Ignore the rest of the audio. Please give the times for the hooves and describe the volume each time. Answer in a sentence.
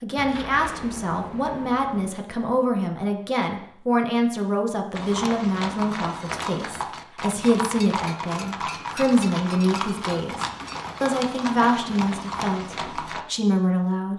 The hooves can be heard from 5.0 to 13.2 s, at a steady volume.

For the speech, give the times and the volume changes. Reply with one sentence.
The speech can be heard from 0.0 to 14.1 s, at a steady volume.